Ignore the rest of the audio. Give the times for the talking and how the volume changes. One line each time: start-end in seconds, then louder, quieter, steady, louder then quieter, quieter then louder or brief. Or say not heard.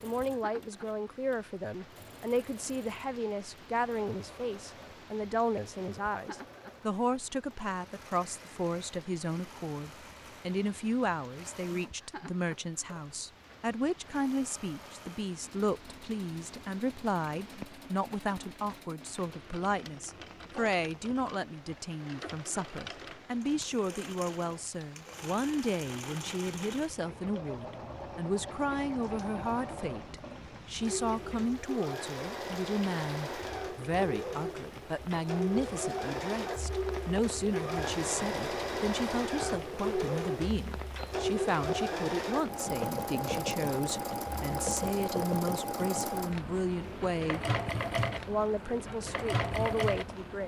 0.0-47.4 steady
48.2-50.4 brief.